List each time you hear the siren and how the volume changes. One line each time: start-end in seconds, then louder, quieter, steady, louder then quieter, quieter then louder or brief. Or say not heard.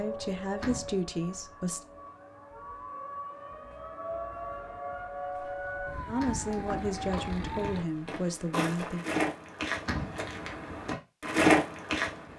0.0-7.8 louder.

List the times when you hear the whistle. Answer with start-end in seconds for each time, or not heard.
not heard.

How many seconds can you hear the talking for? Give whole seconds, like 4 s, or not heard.
5 s.